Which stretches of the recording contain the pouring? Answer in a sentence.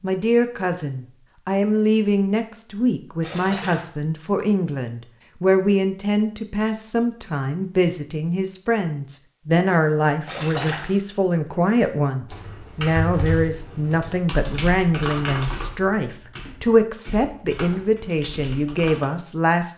The pouring can be heard from 3.2 to 3.9 s and from 10.2 to 10.9 s.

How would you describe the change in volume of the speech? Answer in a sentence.
The volume of the speech stays about the same.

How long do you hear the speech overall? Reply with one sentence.
The speech can be heard for 20 seconds in total.